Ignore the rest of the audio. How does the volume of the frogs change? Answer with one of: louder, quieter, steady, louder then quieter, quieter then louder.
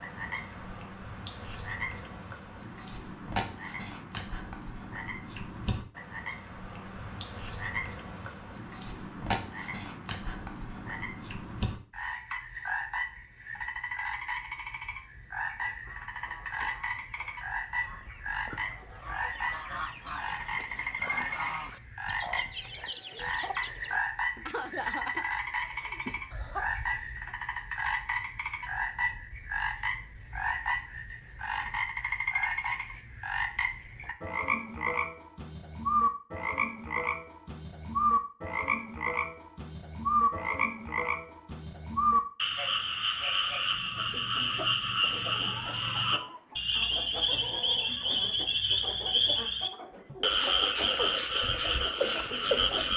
louder.